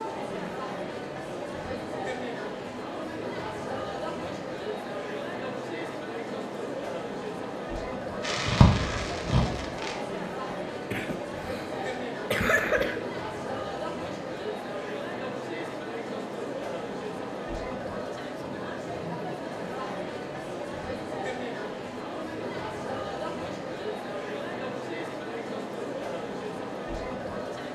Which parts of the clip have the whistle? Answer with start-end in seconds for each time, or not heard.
not heard.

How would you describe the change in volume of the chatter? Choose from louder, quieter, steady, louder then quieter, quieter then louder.
steady.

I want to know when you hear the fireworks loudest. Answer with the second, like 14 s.
9 s.